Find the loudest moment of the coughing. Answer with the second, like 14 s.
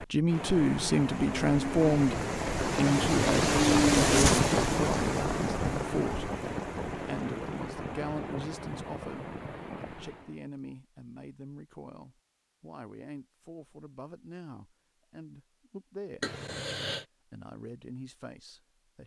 4 s.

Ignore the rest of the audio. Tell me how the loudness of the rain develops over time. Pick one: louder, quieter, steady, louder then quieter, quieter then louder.
louder then quieter.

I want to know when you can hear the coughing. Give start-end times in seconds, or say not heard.
4.0-4.5, 16.2-17.1.